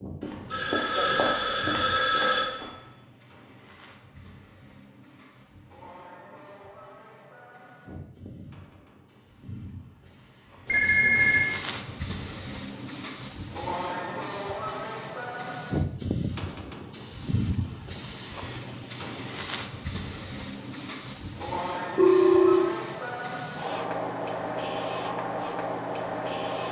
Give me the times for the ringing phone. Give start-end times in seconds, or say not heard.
0.2-2.6, 10.7-11.4, 21.9-22.8.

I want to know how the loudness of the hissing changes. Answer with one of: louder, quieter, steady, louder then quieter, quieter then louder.
louder.